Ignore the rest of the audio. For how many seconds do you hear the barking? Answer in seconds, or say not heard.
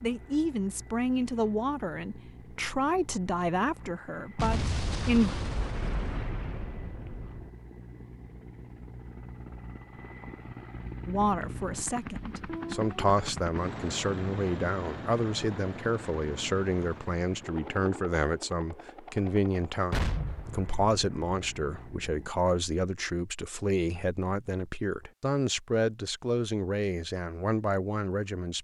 not heard.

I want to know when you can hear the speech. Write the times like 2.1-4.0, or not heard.
0.0-5.3, 11.1-28.5.